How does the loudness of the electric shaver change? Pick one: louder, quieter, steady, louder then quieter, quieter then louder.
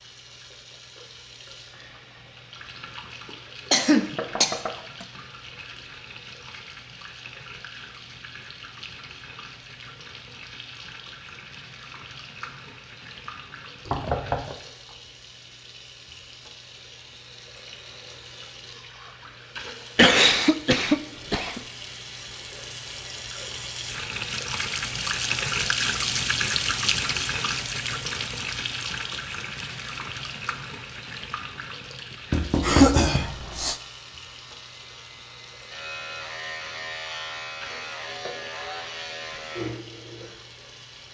louder.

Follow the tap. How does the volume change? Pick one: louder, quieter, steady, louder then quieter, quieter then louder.
louder then quieter.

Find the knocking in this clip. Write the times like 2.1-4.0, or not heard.
4.2-4.8, 13.8-14.6, 32.3-33.2.